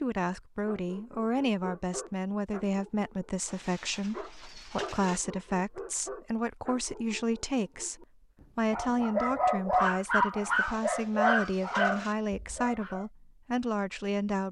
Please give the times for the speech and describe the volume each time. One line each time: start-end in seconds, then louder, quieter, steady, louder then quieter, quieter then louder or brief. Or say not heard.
0.0-14.4 steady.